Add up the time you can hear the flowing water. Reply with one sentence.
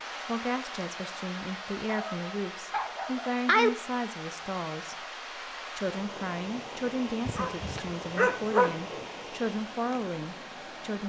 The flowing water can be heard for 11 seconds in total.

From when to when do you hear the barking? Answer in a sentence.
You can hear the barking from 1.9 to 3.7 s and from 7.2 to 9.1 s.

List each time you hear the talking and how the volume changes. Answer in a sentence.
The talking can be heard from 0.2 to 11.0 s, at a steady volume.